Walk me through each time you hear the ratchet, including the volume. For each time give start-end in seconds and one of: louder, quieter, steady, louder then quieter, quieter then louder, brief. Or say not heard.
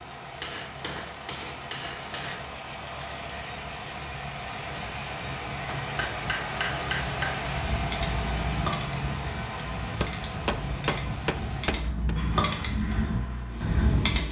7.5-14.2 quieter then louder.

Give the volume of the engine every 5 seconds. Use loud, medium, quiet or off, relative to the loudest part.
medium, loud, medium.